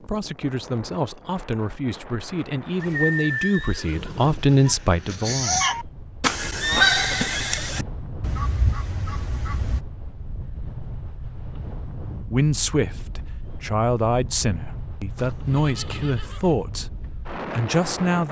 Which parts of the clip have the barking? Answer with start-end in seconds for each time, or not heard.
not heard.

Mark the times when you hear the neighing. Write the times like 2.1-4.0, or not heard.
2.8-4.4, 6.6-7.8, 15.2-16.6.